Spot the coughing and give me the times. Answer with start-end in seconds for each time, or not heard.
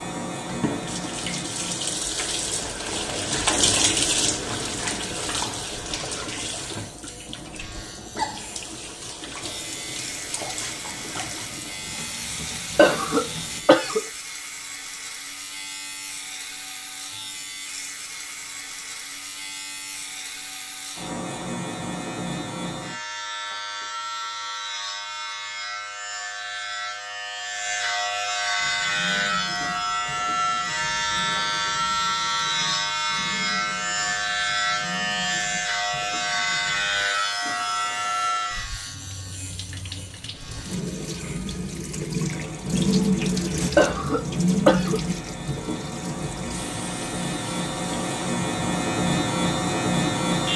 12.8-14.1, 43.8-45.0.